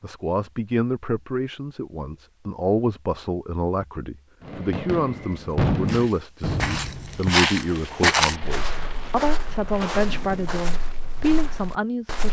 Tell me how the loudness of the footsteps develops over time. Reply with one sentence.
The volume of the footsteps goes up, then down.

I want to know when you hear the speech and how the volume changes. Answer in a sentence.
You can hear the speech from 0.0 to 12.2 s, at a steady volume.